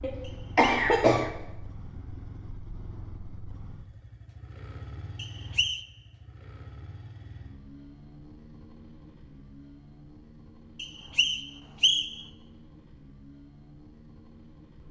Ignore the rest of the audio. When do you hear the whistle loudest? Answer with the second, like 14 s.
12 s.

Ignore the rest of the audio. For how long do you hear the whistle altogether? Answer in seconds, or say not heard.
3 s.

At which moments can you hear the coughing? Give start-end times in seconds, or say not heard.
0.0-1.3.